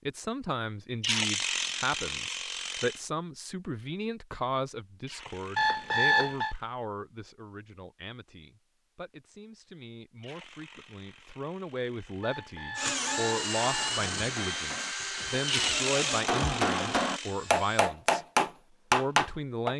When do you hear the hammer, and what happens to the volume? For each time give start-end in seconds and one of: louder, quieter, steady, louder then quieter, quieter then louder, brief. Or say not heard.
13.8-19.7 louder.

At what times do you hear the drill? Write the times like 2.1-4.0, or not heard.
12.8-17.9.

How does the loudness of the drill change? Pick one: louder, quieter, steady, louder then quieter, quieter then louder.
quieter.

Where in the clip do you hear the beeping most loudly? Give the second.
6 s.